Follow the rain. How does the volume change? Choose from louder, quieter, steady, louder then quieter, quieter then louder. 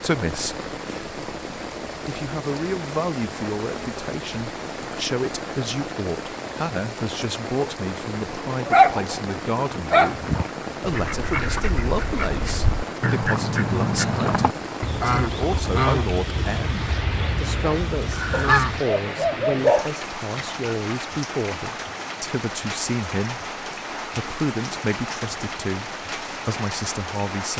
steady.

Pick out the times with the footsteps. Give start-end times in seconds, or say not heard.
not heard.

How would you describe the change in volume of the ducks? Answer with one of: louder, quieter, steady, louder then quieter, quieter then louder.
louder then quieter.